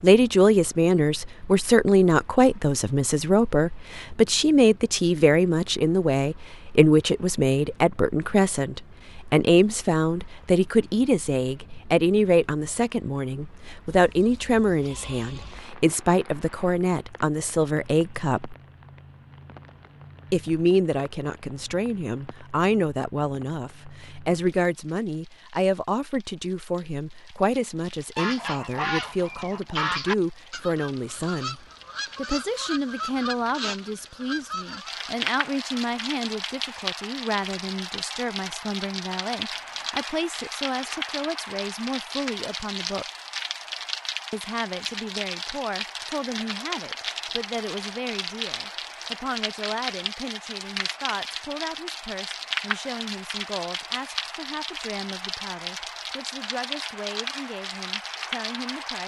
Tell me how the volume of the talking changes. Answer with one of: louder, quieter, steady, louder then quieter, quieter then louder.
quieter.